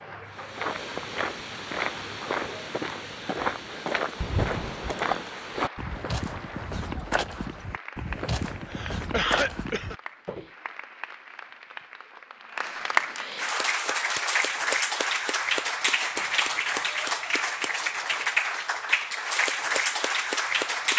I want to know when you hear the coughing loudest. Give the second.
9 s.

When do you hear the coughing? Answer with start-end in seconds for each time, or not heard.
4.2-5.2, 8.7-9.9, 16.1-16.9.